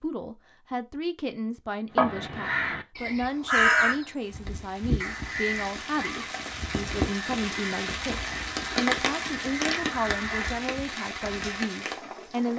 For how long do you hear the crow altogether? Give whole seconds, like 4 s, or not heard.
10 s.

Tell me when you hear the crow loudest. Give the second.
4 s.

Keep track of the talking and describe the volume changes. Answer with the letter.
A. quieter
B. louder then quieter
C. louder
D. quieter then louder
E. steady
E.